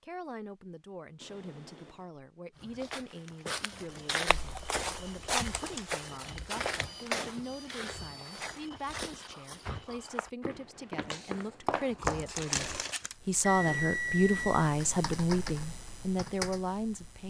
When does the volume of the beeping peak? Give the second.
14 s.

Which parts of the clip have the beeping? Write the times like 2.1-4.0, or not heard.
1.2-2.1, 6.8-8.4, 13.4-14.7.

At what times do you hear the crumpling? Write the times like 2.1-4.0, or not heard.
11.0-13.2.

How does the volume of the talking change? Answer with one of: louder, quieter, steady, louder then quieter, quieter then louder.
louder.